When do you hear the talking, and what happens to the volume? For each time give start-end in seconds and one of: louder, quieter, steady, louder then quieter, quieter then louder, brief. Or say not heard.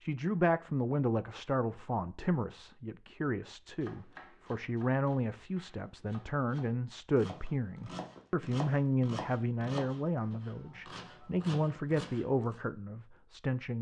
0.0-13.7 steady.